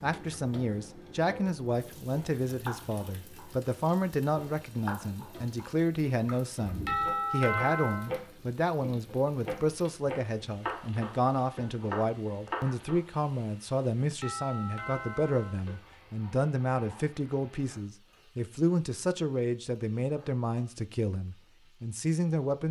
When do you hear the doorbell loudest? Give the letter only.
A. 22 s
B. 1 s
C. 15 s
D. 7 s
D.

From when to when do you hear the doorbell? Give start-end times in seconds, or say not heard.
6.8-8.1, 14.2-15.6.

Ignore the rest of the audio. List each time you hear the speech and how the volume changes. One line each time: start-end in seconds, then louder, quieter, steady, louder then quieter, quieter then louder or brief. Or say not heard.
0.0-22.6 steady.